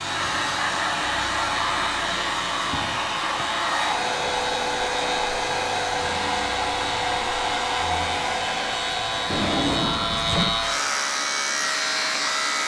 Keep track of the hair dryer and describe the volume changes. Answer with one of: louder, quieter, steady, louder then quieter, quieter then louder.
quieter.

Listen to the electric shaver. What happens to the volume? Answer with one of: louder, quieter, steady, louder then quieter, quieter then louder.
louder.